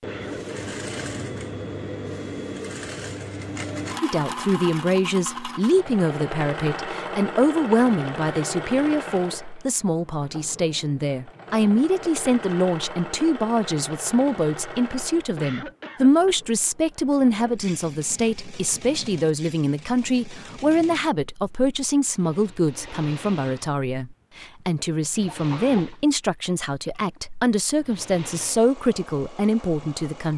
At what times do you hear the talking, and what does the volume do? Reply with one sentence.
You can hear the talking from 4.0 to 30.3 s, at a steady volume.